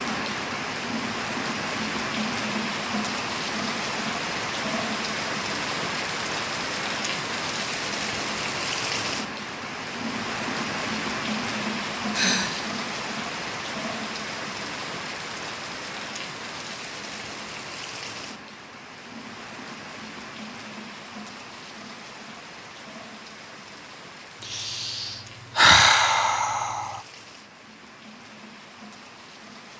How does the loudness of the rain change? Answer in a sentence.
The volume of the rain goes down.